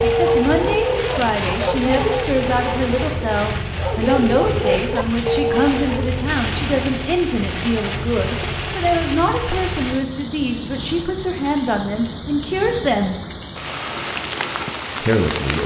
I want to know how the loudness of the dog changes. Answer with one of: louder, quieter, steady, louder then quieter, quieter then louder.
quieter then louder.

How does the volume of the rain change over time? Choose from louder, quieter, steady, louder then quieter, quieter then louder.
steady.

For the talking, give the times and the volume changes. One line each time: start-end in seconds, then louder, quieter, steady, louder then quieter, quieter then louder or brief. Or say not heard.
0.0-13.2 steady
15.0-15.6 brief.